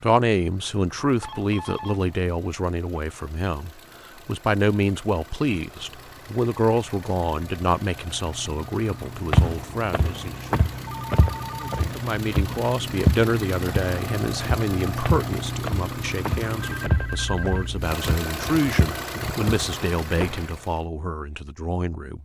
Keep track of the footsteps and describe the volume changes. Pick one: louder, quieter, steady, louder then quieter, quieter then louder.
quieter.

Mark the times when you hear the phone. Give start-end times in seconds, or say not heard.
1.2-2.0, 10.8-11.8, 16.6-17.8.